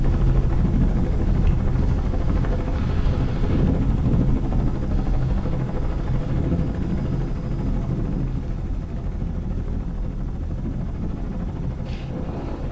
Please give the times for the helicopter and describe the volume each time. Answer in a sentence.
The helicopter can be heard from 0.0 to 12.6 s, getting quieter.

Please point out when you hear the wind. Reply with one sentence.
You can hear the wind from 0.0 to 12.6 s.